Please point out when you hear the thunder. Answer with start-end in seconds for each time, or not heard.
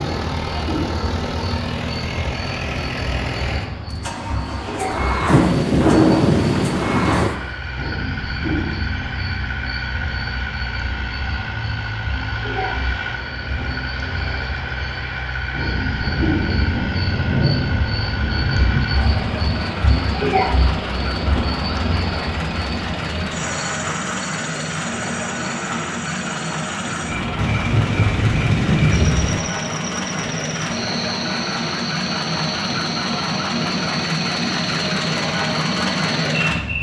5.2-7.3, 16.0-19.1, 27.4-29.4.